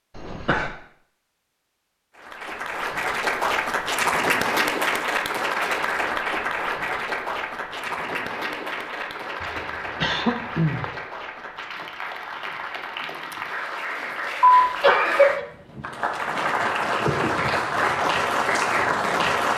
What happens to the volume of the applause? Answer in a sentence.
The volume of the applause goes down, then up.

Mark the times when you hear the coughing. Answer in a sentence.
You can hear the coughing from 0.1 to 0.7 s, from 9.4 to 10.9 s and from 14.4 to 15.4 s.